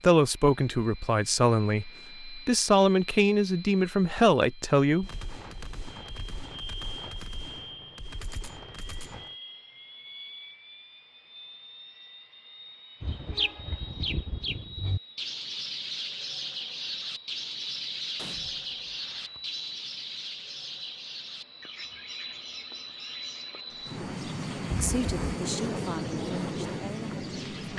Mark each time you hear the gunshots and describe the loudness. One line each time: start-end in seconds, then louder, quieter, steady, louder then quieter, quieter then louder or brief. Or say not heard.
5.0-9.3 steady
18.1-19.5 brief.